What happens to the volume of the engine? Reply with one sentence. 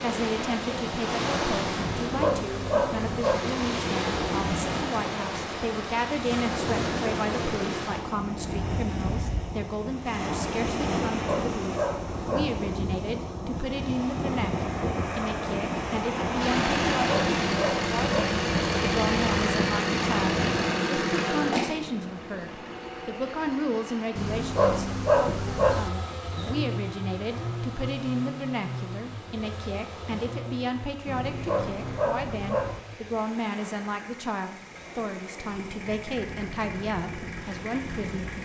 The loudness of the engine goes down.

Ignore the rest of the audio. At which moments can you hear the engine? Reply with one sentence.
You can hear the engine from 16.4 to 38.4 s.